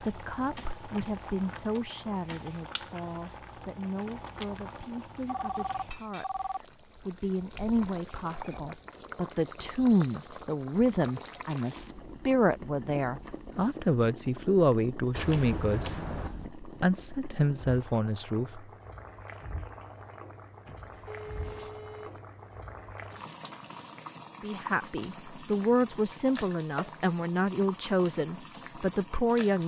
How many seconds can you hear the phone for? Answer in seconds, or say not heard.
4 s.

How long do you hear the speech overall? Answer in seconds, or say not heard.
24 s.